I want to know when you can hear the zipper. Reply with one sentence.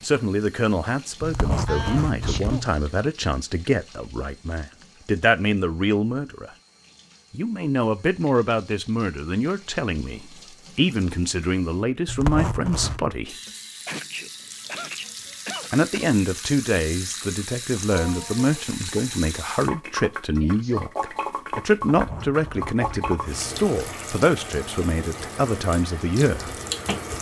You can hear the zipper from 1.2 to 2.8 s, from 12.1 to 13.1 s and from 21.9 to 23.6 s.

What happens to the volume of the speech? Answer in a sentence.
The loudness of the speech stays about the same.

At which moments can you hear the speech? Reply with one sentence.
The speech can be heard from 0.0 to 6.5 s, from 7.3 to 13.3 s and from 15.7 to 26.5 s.